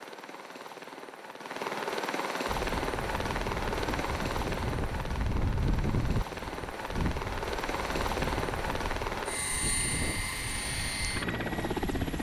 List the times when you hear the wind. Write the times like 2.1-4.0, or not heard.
2.5-12.1.